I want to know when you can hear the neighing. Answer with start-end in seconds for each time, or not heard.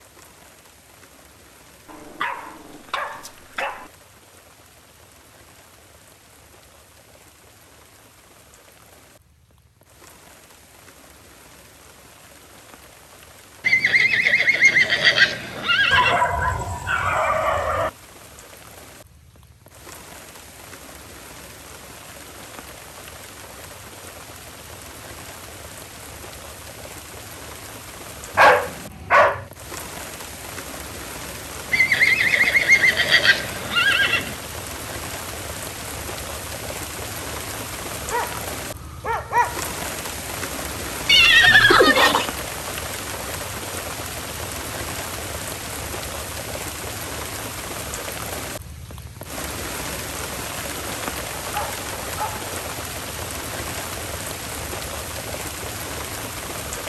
13.7-16.2, 31.7-34.4, 41.0-42.3.